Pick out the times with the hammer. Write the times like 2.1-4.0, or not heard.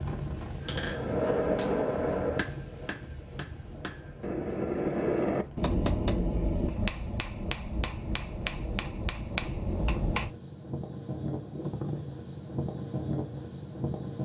0.6-10.3.